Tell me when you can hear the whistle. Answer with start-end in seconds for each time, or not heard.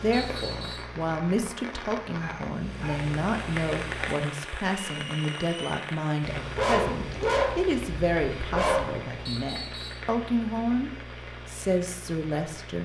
0.1-0.9, 4.9-5.8, 9.2-10.1.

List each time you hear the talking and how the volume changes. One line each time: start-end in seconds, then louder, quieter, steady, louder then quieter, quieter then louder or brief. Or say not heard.
0.0-12.8 steady.